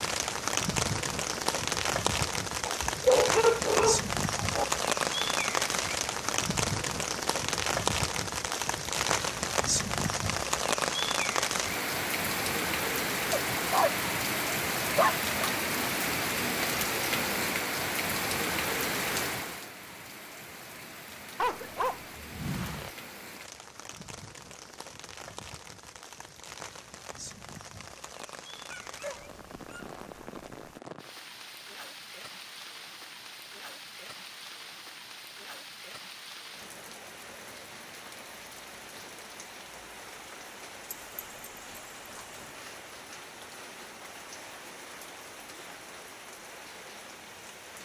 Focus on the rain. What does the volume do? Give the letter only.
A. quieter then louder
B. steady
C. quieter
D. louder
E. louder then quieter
C.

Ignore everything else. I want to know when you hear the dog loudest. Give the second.
3 s.